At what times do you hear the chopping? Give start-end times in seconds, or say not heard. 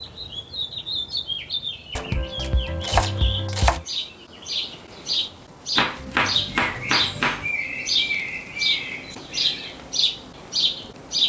1.9-3.9, 5.8-7.5.